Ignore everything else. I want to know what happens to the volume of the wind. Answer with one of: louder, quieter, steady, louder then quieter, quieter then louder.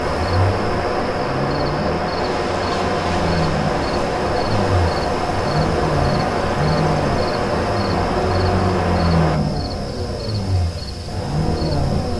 steady.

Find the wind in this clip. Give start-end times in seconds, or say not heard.
0.0-9.4.